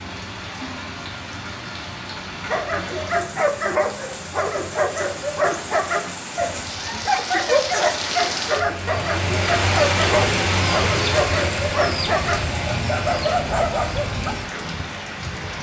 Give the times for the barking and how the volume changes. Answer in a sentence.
The barking can be heard from 2.4 to 14.3 s, at a steady volume.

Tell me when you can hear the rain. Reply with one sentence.
The rain can be heard from 0.0 to 15.5 s.